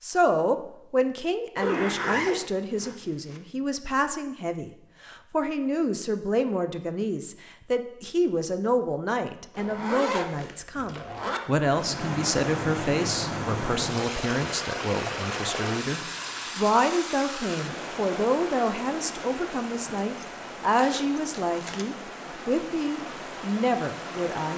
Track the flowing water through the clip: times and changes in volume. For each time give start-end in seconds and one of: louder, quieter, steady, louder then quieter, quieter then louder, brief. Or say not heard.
11.6-24.5 quieter.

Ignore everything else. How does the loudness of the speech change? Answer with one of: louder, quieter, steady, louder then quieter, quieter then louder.
steady.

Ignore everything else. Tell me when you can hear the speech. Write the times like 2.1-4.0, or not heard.
0.0-24.5.